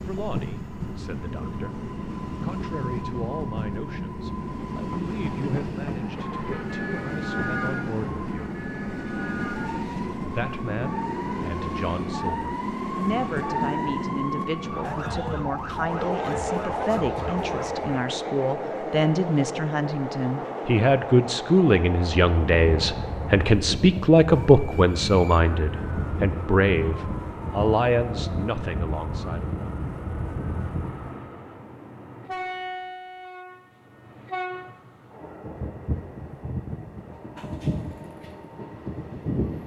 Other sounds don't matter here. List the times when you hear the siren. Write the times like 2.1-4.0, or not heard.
6.0-17.9, 22.2-31.2.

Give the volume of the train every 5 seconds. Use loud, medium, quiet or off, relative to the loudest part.
loud, loud, loud, loud, loud, medium, medium, loud.